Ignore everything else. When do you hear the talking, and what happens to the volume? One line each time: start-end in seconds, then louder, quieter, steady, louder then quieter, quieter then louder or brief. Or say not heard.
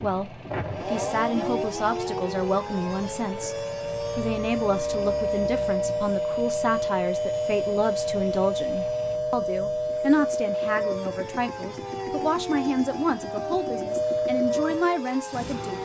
0.0-15.7 steady.